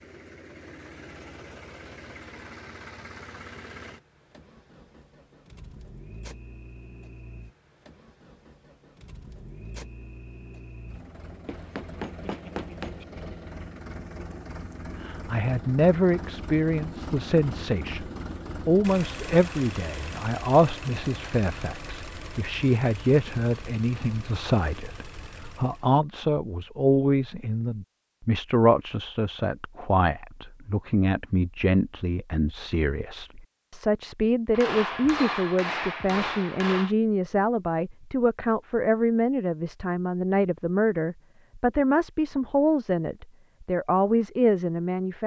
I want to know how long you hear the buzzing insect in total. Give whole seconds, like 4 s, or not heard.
not heard.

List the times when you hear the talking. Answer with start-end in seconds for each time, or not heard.
15.0-45.2.